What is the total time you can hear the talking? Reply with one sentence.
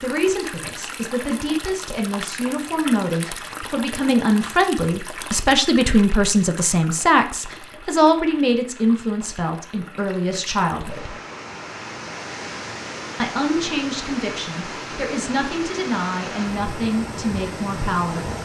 You can hear the talking for 16 seconds altogether.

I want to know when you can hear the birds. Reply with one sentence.
You can't hear the birds here.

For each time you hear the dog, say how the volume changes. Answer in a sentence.
The dog can't be heard in this clip.